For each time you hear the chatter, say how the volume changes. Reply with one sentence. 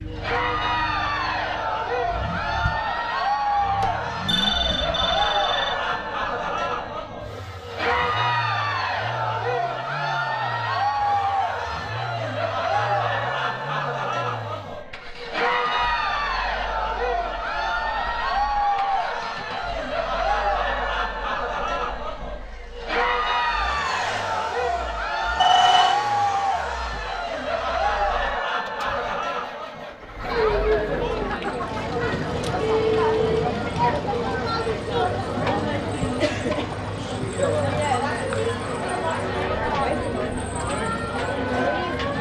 You can hear the chatter from 0.1 to 42.1 s, at a steady volume.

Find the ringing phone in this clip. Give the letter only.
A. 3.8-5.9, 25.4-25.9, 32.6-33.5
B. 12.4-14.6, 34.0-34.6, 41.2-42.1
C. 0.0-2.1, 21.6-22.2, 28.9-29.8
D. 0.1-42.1
A.